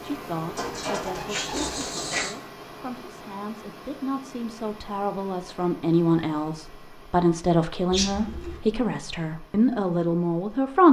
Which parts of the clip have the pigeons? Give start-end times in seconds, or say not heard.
0.6-2.4, 7.9-8.6.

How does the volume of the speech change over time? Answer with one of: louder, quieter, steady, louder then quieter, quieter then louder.
louder.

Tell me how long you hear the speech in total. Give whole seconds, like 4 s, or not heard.
11 s.